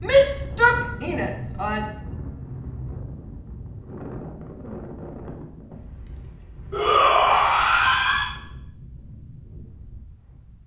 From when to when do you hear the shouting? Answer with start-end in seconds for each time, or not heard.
0.0-1.9, 6.7-8.3.